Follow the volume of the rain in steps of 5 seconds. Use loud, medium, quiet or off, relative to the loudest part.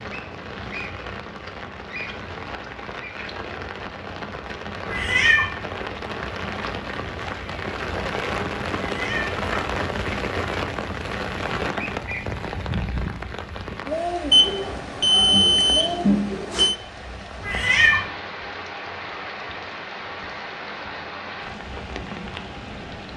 medium, loud, loud, medium, medium.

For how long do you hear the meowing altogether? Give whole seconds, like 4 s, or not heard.
2 s.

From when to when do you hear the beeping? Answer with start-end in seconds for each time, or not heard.
14.3-16.8.